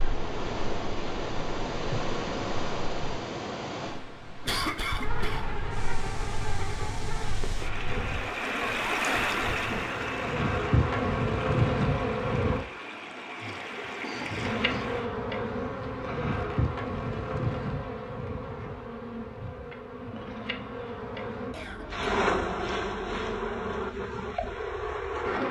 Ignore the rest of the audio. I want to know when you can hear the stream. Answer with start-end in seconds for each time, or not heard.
0.0-15.1.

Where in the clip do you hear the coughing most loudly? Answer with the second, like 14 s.
5 s.